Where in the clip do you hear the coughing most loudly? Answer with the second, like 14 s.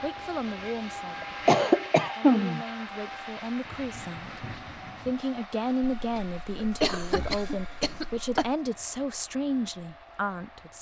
2 s.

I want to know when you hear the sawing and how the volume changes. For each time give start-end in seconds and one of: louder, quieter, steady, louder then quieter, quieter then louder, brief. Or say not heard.
not heard.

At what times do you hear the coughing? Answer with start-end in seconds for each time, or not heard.
1.2-2.6, 5.8-8.5.